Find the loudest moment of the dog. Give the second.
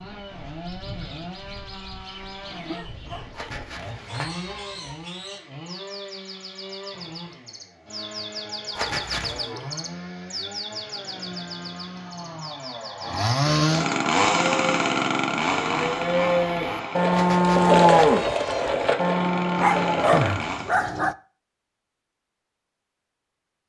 20 s.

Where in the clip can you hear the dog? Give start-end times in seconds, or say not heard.
2.2-3.4, 19.6-21.1.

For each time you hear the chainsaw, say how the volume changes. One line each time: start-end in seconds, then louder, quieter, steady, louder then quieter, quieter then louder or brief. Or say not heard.
0.0-20.8 louder then quieter.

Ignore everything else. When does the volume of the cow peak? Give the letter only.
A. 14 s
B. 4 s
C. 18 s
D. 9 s
C.